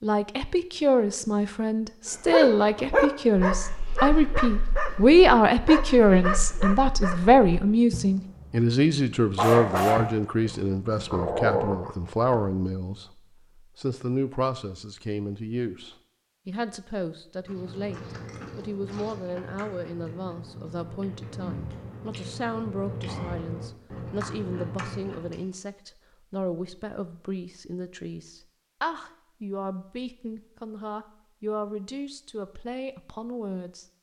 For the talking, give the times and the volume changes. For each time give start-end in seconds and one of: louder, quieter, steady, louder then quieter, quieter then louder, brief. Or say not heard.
0.0-33.9 quieter.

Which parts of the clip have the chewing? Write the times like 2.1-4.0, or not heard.
17.4-25.4.